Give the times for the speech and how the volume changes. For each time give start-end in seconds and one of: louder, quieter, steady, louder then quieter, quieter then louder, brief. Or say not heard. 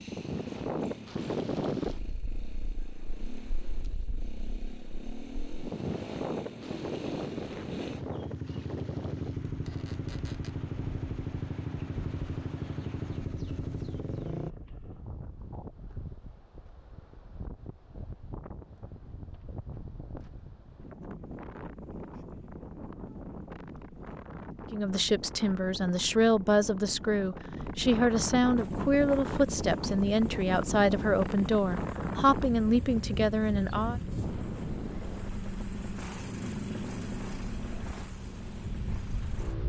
24.7-34.0 steady.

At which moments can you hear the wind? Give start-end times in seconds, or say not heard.
0.0-39.6.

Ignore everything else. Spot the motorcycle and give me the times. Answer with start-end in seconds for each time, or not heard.
0.0-14.6, 28.6-39.6.